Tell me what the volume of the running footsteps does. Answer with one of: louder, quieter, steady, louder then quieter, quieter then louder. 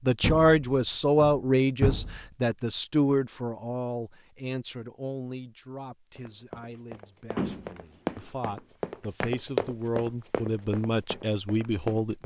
louder then quieter.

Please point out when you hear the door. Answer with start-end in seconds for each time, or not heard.
0.2-2.2, 7.3-8.2.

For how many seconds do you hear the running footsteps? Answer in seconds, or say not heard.
6 s.